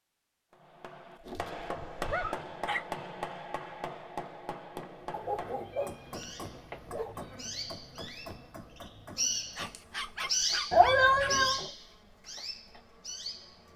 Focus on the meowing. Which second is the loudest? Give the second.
11 s.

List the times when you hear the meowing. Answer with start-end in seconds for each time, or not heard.
1.3-2.4, 5.5-7.5, 10.7-11.6.